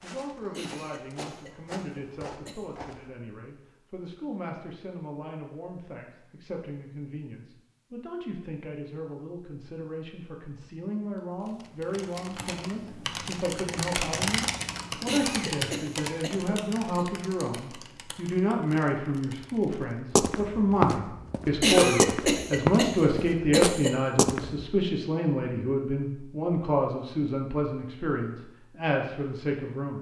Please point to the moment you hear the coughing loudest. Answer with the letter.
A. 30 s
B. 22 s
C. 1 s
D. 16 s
B.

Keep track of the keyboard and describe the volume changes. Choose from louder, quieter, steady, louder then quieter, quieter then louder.
louder then quieter.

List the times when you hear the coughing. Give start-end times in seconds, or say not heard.
0.5-2.6, 15.1-17.1, 21.6-23.9.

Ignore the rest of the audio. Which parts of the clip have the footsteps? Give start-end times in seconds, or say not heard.
0.0-3.1, 20.1-24.6.